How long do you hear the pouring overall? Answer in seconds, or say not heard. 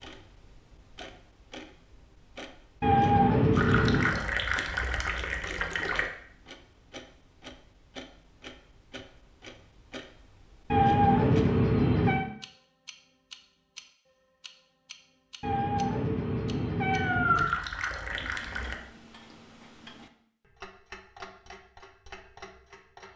4 s.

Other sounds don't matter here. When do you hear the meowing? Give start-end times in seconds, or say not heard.
2.8-4.2, 10.7-12.2, 15.4-17.4.